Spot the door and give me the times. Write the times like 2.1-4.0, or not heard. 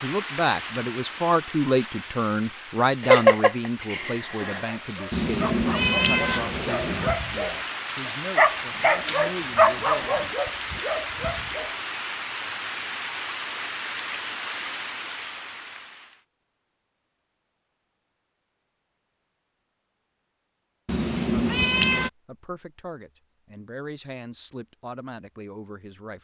not heard.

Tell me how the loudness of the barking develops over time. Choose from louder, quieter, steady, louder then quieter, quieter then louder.
louder then quieter.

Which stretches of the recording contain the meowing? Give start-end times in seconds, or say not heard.
5.1-7.1, 20.9-22.1.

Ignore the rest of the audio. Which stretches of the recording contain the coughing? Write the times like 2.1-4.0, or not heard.
3.0-4.6.